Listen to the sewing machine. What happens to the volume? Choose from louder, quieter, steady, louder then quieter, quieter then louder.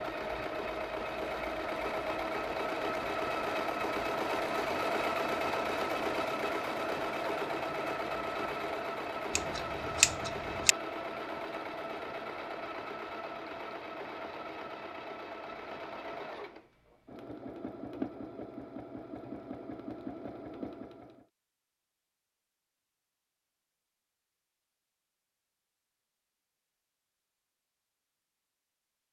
quieter.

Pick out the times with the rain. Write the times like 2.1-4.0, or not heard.
not heard.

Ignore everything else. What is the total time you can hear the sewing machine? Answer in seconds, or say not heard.
21 s.